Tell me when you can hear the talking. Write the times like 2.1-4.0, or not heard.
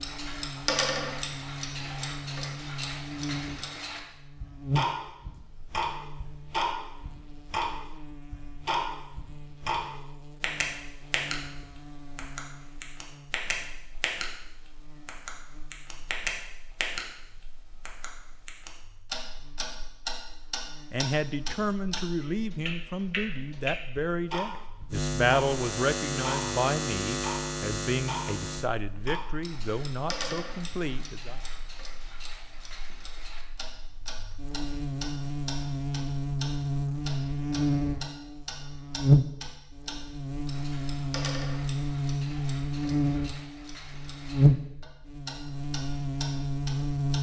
20.9-31.4.